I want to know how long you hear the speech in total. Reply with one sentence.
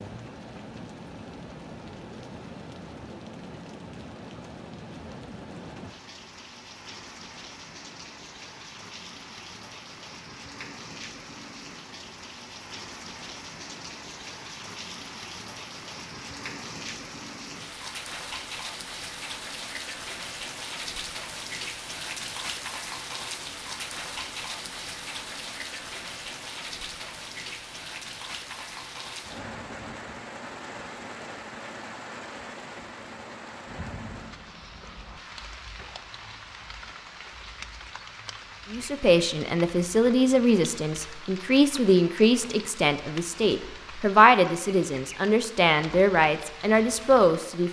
You can hear the speech for 9 seconds altogether.